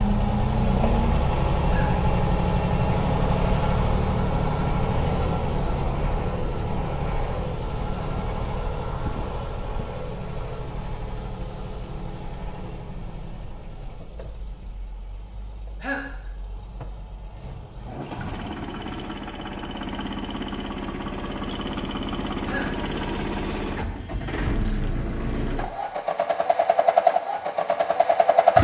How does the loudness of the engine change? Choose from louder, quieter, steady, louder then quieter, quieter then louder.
quieter then louder.